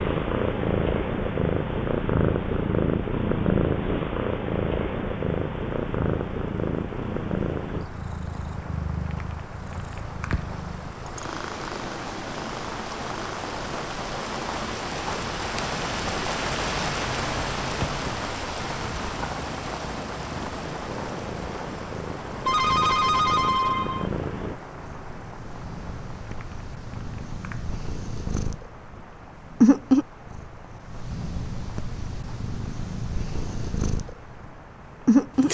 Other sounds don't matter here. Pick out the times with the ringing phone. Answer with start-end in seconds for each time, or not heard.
22.4-24.1.